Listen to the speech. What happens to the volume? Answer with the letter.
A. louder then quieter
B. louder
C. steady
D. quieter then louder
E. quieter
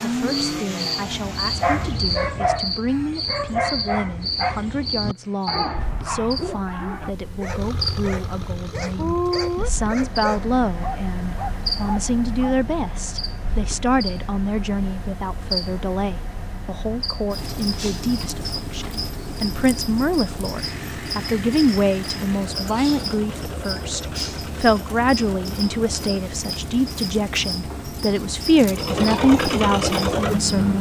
B.